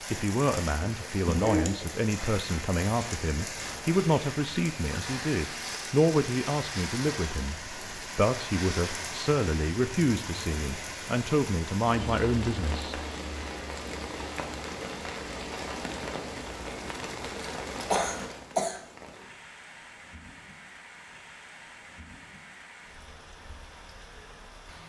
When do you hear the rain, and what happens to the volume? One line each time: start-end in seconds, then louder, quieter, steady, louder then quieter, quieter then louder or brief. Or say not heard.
0.0-24.8 quieter.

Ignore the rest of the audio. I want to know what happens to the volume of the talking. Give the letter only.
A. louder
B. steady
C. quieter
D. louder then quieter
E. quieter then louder
B.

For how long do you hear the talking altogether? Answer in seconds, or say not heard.
13 s.